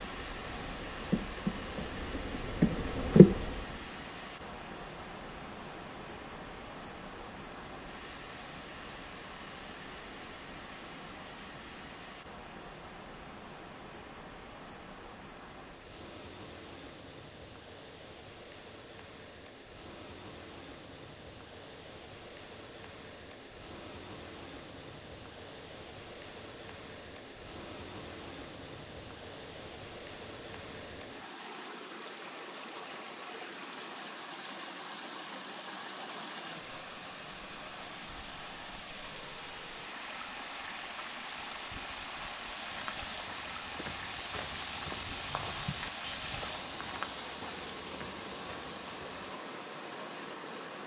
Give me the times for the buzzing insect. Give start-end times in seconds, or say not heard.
0.0-3.6.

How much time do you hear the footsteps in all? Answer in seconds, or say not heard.
7 s.